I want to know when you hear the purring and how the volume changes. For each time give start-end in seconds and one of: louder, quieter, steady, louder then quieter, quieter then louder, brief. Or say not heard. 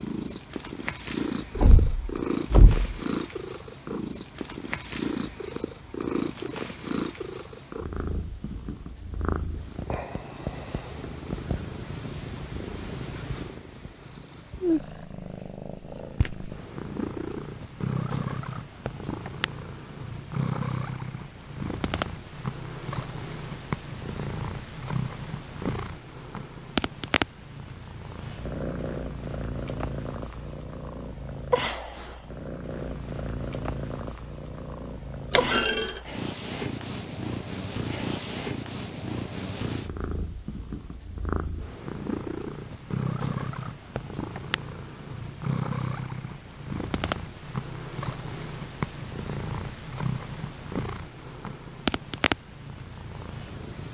0.0-53.8 steady.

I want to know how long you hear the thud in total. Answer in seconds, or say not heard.
2 s.